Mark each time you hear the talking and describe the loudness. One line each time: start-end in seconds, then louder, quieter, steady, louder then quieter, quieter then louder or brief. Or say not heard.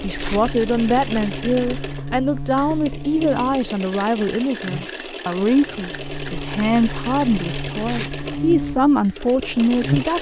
0.0-10.1 steady.